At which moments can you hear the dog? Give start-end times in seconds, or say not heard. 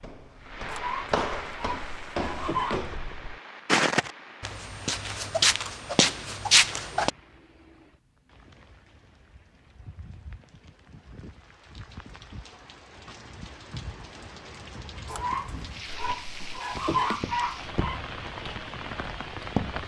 0.7-2.8, 15.1-18.0.